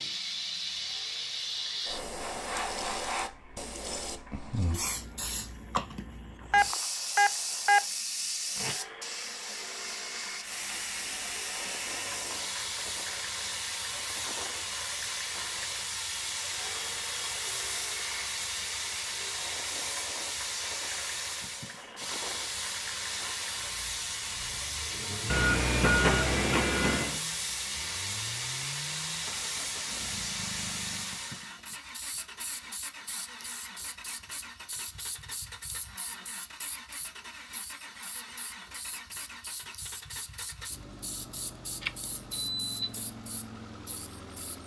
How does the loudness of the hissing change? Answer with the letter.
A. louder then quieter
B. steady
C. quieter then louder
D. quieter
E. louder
D.